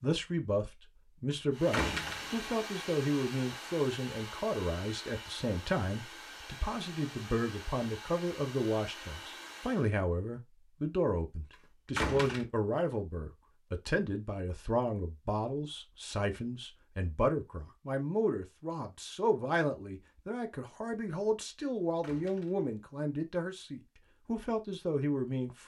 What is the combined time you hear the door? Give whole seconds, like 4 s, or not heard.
2 s.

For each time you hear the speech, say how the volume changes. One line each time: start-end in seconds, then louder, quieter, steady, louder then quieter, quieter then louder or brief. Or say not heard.
0.0-25.6 steady.